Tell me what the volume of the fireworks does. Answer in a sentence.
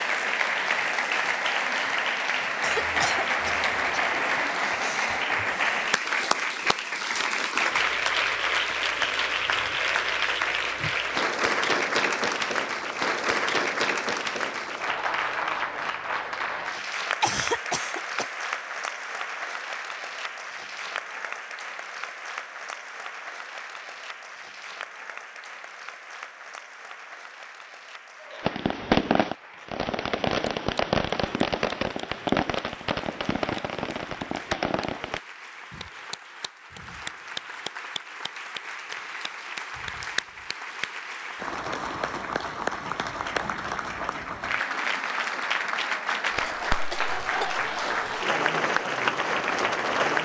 The volume of the fireworks goes down.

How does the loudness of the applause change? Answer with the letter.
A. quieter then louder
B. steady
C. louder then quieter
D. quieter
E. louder
A.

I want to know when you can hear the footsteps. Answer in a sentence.
You can't hear the footsteps here.